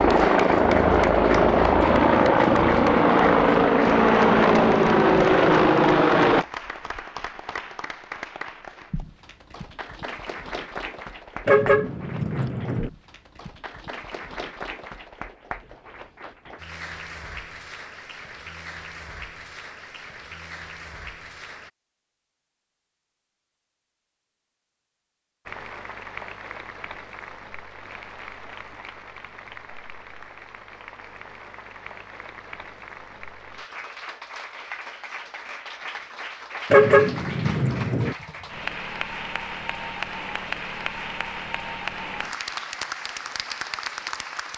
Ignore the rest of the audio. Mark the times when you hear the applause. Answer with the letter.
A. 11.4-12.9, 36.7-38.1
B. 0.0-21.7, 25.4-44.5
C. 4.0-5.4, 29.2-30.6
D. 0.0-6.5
B.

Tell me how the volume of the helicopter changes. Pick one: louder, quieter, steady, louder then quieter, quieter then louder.
steady.